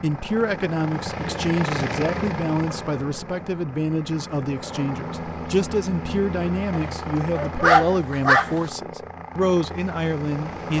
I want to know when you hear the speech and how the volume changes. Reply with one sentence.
You can hear the speech from 0.0 to 10.7 s, at a steady volume.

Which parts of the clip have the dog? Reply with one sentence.
You can hear the dog from 6.7 to 8.6 s.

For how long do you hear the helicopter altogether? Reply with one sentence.
The helicopter can be heard for 11 seconds in total.